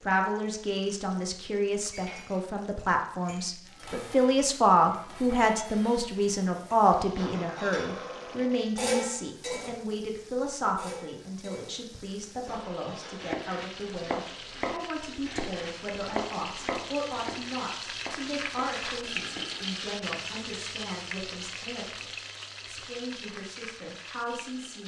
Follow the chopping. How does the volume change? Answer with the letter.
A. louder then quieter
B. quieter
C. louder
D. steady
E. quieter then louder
B.